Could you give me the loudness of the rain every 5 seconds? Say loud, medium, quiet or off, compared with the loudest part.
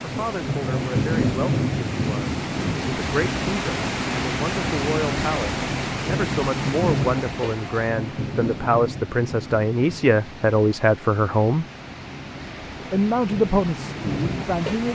loud, loud, medium.